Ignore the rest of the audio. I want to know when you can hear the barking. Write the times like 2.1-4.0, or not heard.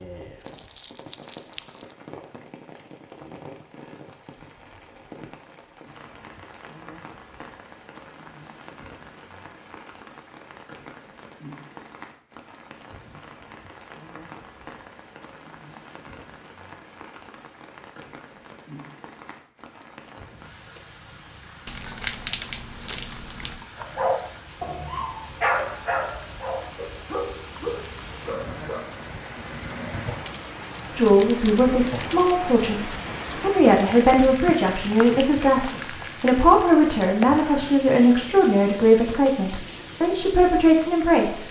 23.8-29.2.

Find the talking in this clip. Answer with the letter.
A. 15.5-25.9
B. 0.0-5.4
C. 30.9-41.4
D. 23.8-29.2
C.